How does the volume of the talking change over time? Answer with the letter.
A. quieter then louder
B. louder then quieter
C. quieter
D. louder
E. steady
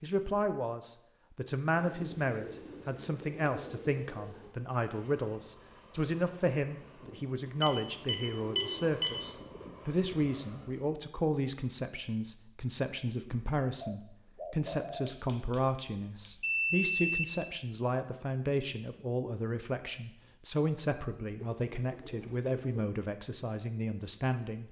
E.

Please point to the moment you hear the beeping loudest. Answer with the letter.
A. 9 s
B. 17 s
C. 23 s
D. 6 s
B.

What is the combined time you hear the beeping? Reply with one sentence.
The beeping can be heard for 4 seconds in total.